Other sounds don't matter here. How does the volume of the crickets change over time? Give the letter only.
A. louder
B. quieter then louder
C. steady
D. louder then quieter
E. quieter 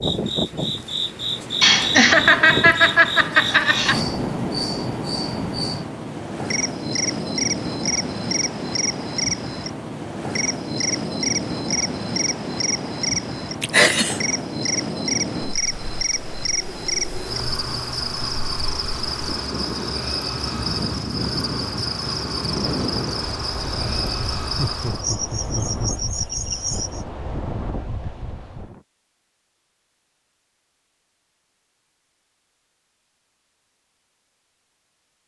C.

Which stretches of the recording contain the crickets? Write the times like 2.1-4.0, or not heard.
0.0-27.1.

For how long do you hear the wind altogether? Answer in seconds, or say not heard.
29 s.